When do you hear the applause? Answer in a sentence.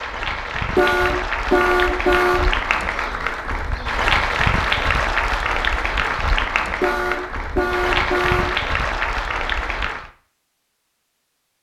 You can hear the applause from 0.0 to 10.1 s.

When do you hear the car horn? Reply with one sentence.
The car horn can be heard from 0.8 to 2.5 s and from 6.8 to 8.6 s.